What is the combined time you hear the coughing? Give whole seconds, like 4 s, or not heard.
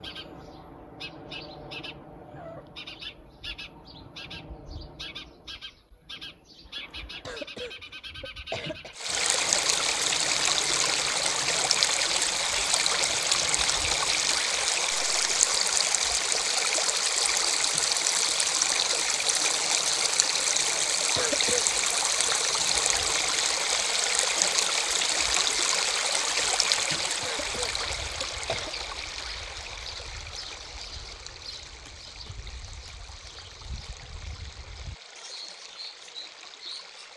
4 s.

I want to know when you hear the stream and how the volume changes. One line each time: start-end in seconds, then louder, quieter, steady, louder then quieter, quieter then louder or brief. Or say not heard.
8.9-37.1 quieter.